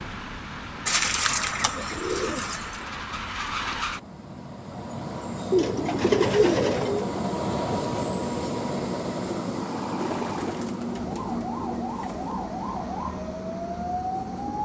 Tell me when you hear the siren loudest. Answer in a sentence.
The volume of the siren peaks at 14 seconds.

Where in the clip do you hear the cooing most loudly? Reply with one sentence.
The volume of the cooing peaks at 6 seconds.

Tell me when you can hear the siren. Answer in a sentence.
The siren can be heard from 9.6 to 14.5 s.